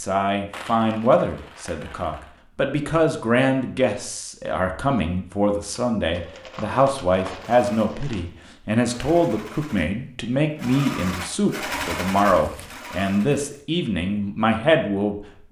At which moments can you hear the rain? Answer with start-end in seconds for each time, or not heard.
not heard.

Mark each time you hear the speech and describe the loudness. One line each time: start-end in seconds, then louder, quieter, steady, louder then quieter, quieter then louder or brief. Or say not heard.
0.0-15.4 steady.